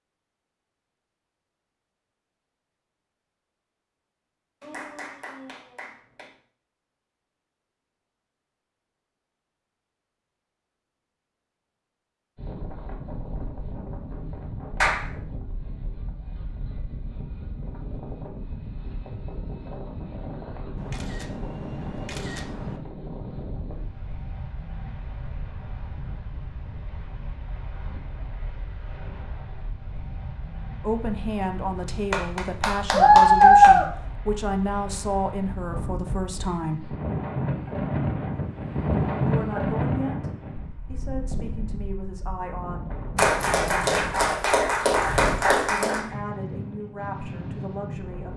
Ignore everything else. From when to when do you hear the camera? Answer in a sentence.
You can hear the camera from 20.8 to 22.8 s.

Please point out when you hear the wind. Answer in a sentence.
You can hear the wind from 12.3 to 48.3 s.